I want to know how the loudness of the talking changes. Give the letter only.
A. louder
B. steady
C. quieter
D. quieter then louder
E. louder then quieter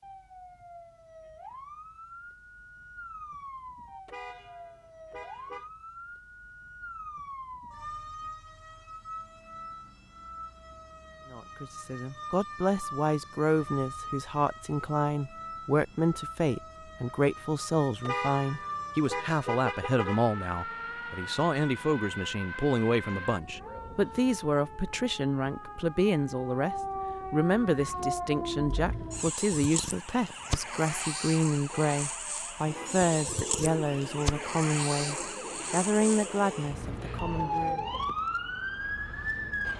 B.